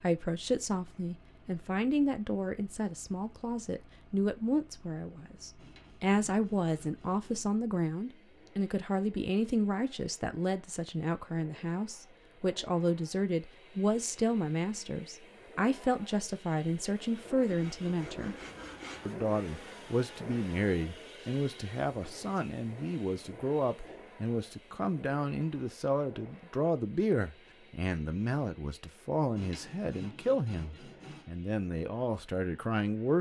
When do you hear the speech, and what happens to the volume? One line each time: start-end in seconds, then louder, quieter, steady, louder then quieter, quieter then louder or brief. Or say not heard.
0.0-18.4 steady
19.1-33.1 steady.